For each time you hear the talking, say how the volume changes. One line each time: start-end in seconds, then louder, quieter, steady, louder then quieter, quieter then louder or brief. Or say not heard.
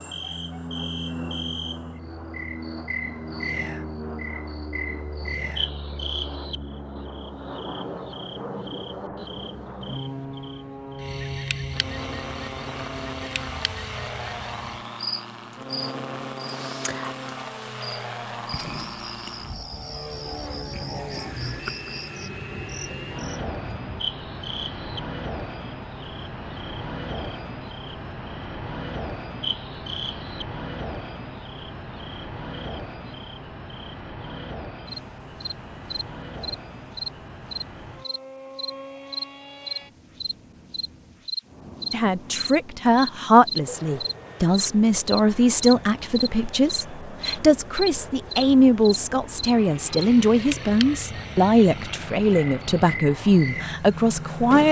41.9-54.6 steady.